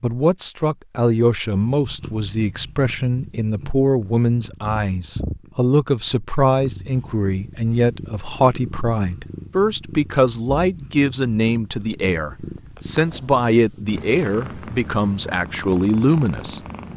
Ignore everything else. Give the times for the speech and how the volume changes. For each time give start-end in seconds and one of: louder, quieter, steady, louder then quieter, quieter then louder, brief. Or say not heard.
0.0-16.6 steady.